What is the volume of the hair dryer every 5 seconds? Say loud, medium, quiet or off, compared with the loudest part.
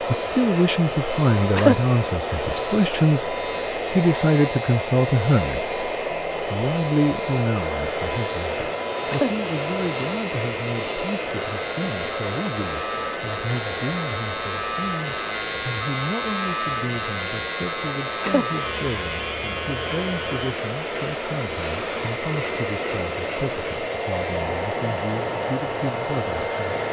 loud, loud, loud, medium, loud, loud.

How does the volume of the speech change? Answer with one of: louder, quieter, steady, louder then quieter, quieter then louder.
quieter.